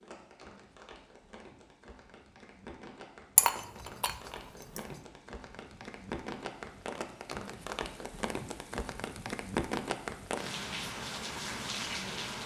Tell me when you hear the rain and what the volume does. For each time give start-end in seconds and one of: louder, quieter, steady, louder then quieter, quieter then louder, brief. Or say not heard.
0.0-12.4 louder.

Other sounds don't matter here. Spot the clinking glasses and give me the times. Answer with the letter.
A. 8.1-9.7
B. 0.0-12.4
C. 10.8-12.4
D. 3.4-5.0
D.